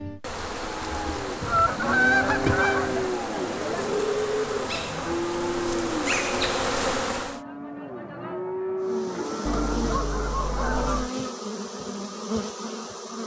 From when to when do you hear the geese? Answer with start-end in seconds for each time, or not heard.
1.4-3.0, 9.4-11.1.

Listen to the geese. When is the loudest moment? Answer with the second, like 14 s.
2 s.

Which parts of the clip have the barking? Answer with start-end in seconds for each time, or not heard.
not heard.